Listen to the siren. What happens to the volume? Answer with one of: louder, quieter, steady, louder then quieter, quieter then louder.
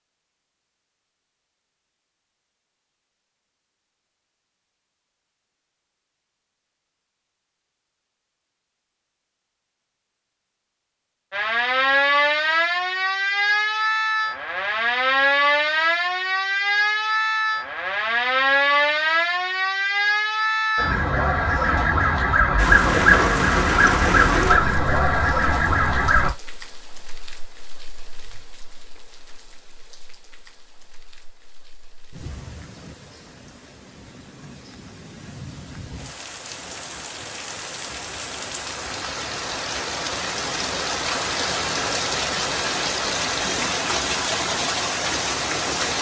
steady.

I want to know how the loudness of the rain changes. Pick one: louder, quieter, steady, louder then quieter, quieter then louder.
quieter then louder.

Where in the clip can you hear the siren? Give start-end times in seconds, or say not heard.
11.3-26.3.